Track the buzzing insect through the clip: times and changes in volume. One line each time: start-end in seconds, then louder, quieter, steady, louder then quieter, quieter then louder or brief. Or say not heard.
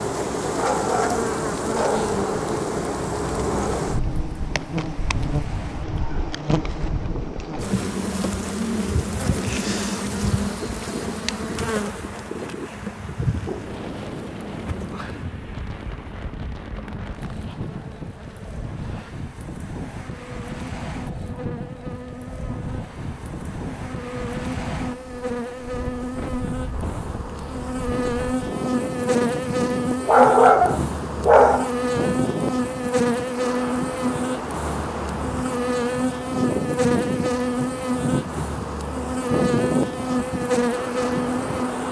0.0-41.8 quieter then louder.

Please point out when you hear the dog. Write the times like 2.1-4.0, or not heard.
0.5-2.1, 30.0-31.7.